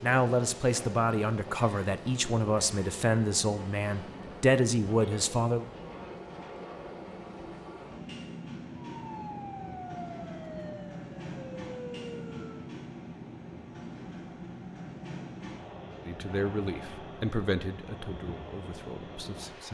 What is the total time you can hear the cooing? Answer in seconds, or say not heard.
not heard.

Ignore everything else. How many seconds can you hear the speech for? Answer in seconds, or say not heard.
9 s.